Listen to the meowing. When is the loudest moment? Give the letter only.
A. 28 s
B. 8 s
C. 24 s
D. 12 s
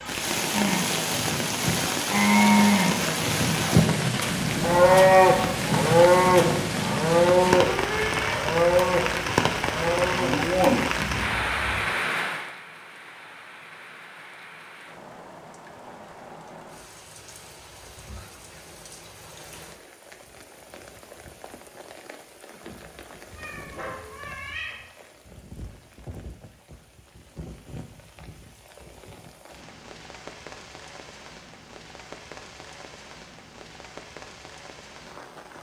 B.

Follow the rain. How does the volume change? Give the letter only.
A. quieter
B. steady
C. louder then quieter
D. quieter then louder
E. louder
A.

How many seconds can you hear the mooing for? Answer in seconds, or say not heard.
11 s.